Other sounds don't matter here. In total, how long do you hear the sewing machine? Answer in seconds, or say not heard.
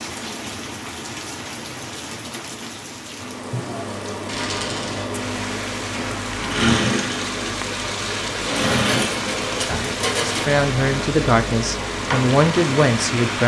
10 s.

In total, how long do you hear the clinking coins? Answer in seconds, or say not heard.
3 s.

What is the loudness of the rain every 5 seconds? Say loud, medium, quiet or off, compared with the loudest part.
medium, loud, loud.